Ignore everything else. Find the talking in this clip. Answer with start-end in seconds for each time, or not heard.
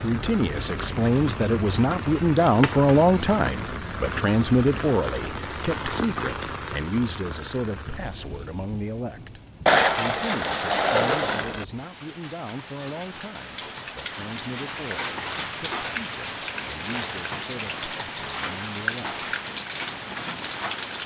0.0-19.2.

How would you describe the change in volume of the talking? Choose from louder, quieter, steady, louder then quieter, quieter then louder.
quieter.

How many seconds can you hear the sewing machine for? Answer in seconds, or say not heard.
not heard.